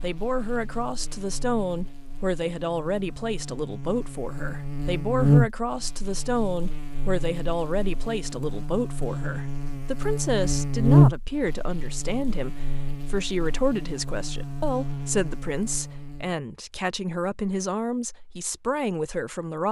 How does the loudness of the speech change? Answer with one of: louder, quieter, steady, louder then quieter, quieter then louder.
steady.